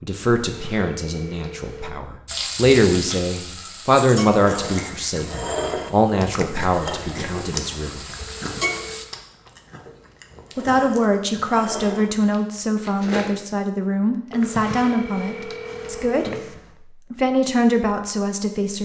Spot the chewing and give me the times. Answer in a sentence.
The chewing can be heard from 4.3 to 13.3 s.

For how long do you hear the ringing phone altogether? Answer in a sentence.
The ringing phone can be heard for 5 seconds in total.